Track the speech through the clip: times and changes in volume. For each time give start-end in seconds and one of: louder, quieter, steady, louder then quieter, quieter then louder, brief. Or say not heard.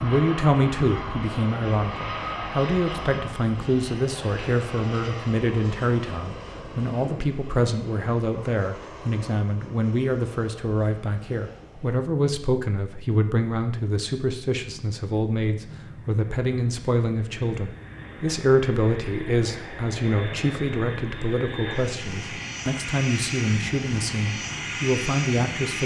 0.0-25.8 steady.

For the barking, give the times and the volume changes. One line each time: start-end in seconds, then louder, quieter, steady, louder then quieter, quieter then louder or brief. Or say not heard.
not heard.